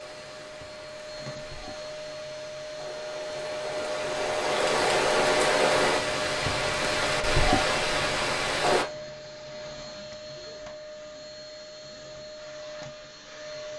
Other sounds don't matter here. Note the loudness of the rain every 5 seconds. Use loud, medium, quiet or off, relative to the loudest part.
medium, loud, off.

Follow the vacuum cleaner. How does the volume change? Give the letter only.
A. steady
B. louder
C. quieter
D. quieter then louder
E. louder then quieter
E.